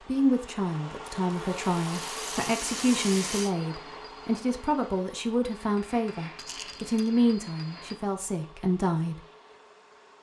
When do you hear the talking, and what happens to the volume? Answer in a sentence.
The talking can be heard from 0.1 to 9.2 s, at a steady volume.